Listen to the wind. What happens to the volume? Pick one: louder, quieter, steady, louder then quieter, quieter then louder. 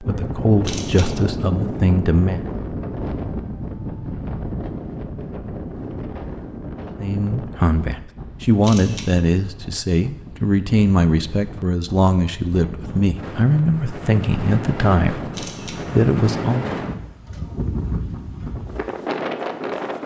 quieter then louder.